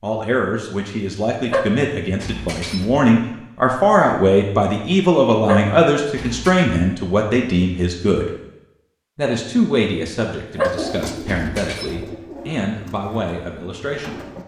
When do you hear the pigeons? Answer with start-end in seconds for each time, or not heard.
10.6-14.4.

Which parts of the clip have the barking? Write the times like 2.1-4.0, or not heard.
1.4-3.0, 5.5-6.7, 10.6-12.1.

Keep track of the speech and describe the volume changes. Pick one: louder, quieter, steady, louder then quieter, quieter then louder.
louder then quieter.